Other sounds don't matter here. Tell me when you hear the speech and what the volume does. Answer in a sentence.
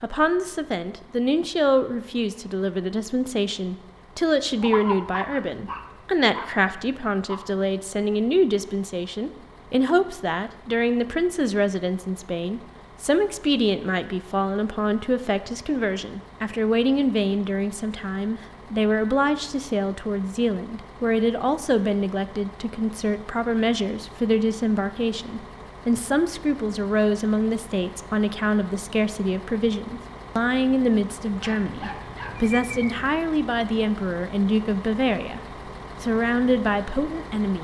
The speech can be heard from 0.0 to 37.5 s, at a steady volume.